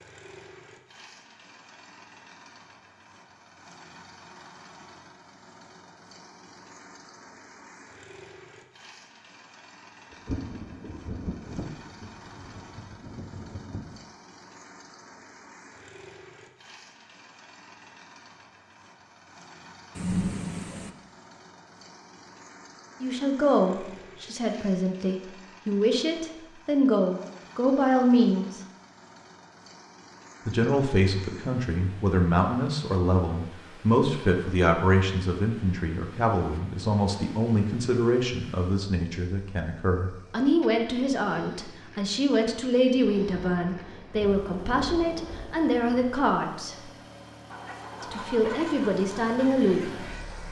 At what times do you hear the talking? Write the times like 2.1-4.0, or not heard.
23.0-28.6, 30.4-46.8, 48.0-50.4.